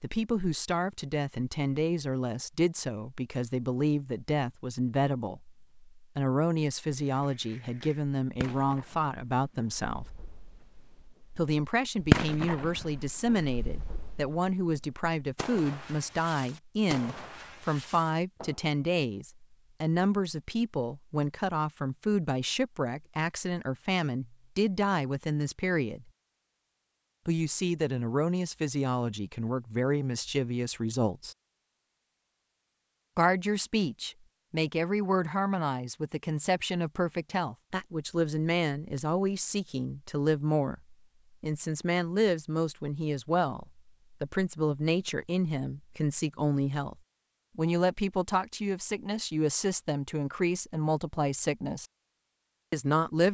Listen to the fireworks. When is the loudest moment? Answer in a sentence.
The loudest moment of the fireworks is at 12 seconds.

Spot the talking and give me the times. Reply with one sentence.
The talking can be heard from 0.0 to 10.1 s, from 11.3 to 26.1 s, from 27.2 to 31.4 s, from 33.1 to 47.0 s, from 47.5 to 51.9 s and from 52.7 to 53.3 s.